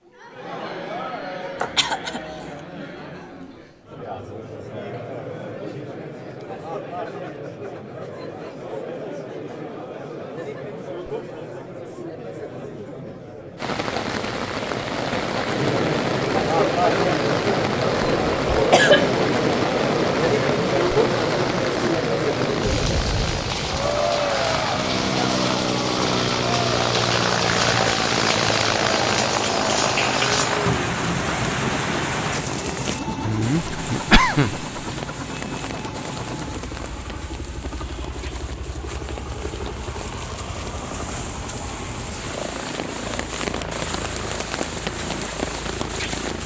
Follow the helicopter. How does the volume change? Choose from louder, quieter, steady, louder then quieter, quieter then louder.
louder then quieter.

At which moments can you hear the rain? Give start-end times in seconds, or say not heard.
13.6-46.4.